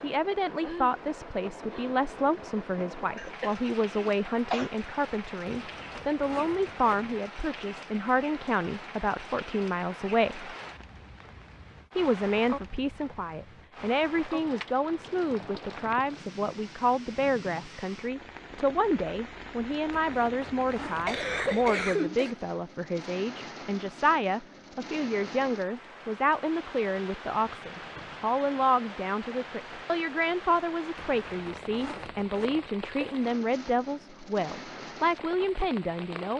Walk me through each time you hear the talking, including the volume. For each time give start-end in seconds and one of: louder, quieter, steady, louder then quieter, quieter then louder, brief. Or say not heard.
0.0-10.5 steady
11.9-36.3 steady.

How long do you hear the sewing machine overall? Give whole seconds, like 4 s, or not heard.
not heard.